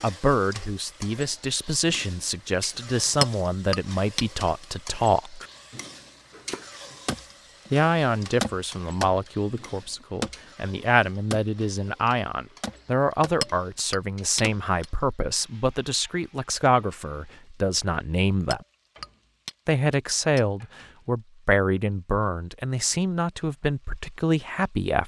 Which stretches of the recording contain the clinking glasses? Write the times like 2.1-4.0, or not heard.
3.2-4.7, 13.4-14.8, 18.5-20.4.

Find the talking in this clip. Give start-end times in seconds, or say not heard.
0.0-5.5, 7.7-18.6, 19.6-25.0.